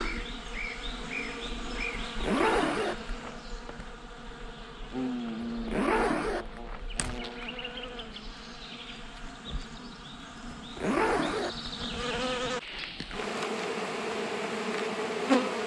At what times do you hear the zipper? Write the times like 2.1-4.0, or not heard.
1.9-3.4, 5.4-6.8, 10.5-11.9.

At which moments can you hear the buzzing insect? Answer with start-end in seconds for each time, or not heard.
0.0-15.6.